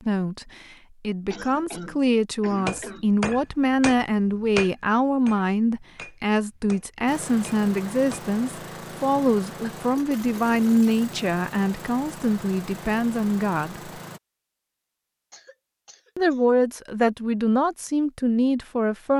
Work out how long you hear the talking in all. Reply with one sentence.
You can hear the talking for 17 seconds altogether.